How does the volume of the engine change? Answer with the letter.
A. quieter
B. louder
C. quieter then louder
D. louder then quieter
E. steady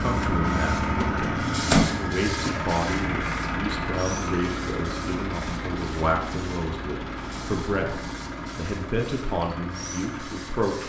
A.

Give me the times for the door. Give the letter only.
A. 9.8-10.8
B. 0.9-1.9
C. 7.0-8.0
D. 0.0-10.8
B.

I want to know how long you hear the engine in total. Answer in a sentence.
The engine can be heard for 11 seconds in total.